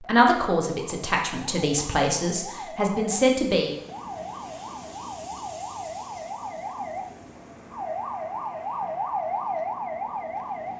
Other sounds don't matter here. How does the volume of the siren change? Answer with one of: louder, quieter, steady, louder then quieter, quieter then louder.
louder.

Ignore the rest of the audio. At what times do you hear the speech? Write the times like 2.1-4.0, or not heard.
0.0-3.7.